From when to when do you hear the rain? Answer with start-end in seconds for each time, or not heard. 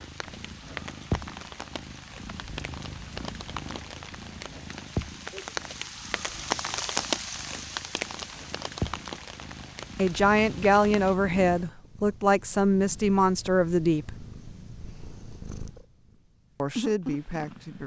0.0-11.2.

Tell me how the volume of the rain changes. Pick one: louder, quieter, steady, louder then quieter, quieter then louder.
louder then quieter.